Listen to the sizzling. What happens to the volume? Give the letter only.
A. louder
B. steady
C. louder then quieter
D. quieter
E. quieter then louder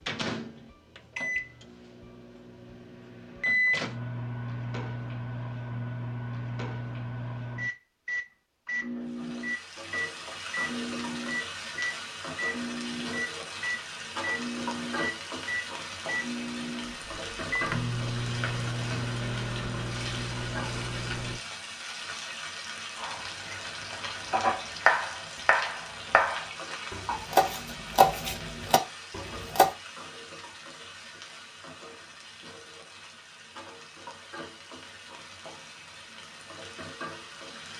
D.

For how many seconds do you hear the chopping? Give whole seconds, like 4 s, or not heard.
7 s.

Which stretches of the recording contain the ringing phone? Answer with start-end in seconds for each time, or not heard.
not heard.